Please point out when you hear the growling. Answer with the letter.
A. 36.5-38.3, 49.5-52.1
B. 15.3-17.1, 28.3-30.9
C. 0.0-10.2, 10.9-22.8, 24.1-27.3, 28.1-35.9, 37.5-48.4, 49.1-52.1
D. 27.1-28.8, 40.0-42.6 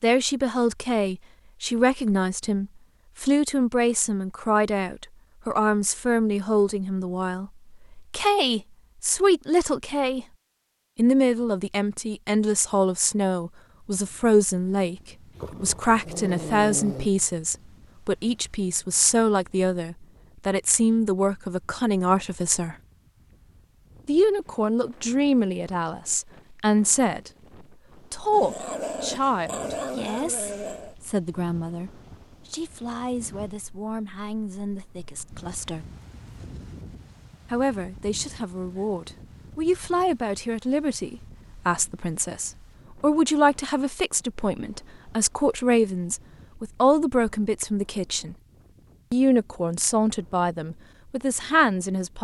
B.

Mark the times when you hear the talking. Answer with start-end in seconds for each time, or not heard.
0.0-10.2, 10.9-22.8, 24.1-27.3, 28.1-35.9, 37.5-48.4, 49.1-52.1.